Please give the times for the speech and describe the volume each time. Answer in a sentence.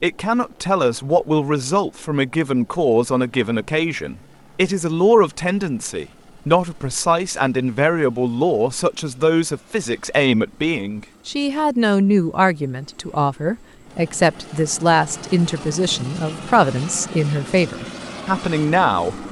The speech can be heard from 0.0 to 19.2 s, at a steady volume.